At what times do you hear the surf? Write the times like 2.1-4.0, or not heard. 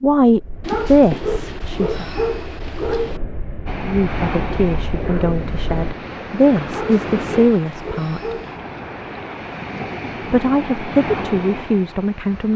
3.6-12.5.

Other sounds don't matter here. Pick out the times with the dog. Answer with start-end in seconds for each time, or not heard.
0.6-3.2, 6.7-8.6.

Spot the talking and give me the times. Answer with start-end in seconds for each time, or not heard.
0.0-2.0, 3.8-8.3, 10.2-12.5.